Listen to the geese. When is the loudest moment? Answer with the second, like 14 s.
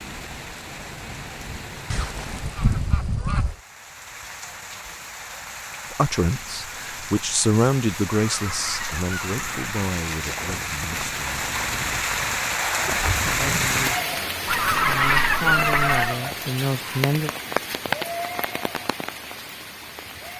15 s.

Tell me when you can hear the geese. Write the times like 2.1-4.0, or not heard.
1.9-3.5, 8.1-9.7, 14.4-16.2.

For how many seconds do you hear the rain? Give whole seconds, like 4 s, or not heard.
20 s.